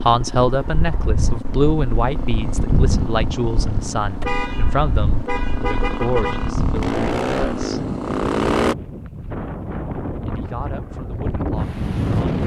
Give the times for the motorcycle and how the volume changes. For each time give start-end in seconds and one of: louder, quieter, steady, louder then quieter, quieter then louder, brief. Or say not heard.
0.0-8.8 louder.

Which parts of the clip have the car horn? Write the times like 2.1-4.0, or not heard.
4.2-6.5.